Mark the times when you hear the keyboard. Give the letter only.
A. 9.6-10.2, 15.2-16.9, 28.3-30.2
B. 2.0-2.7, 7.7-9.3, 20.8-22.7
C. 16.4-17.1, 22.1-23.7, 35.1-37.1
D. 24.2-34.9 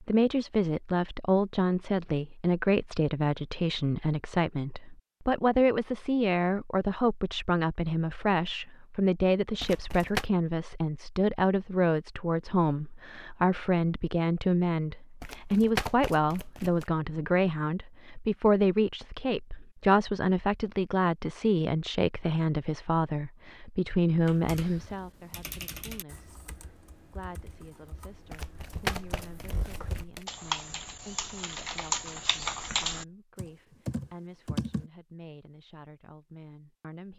D.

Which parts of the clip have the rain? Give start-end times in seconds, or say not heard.
not heard.